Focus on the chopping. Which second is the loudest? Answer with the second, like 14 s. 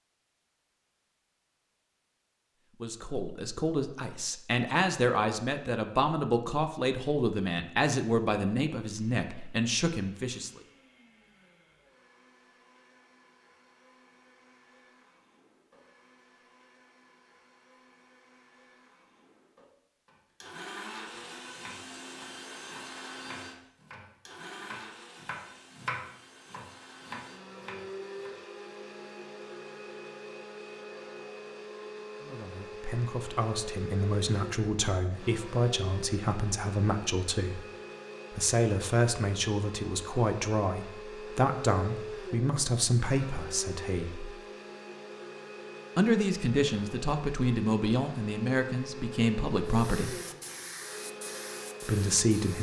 26 s.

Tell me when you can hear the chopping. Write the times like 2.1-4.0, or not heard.
21.1-28.4.